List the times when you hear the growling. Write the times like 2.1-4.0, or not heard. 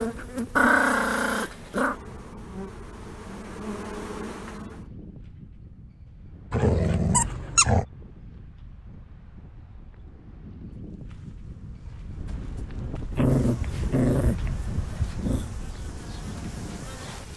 0.6-1.9, 6.5-7.8, 13.1-15.5.